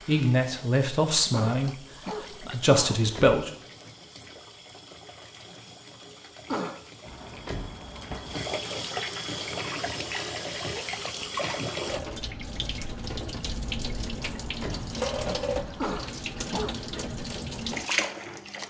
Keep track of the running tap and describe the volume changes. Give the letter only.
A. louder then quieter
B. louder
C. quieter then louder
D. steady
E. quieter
B.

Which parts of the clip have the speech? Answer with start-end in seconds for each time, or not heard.
0.1-3.5.